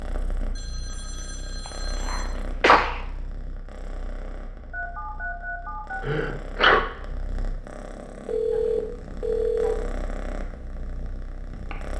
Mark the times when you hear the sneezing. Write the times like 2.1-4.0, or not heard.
2.0-3.0, 6.0-6.8.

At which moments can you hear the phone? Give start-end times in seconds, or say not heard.
0.6-2.3, 4.7-6.0, 8.2-9.8.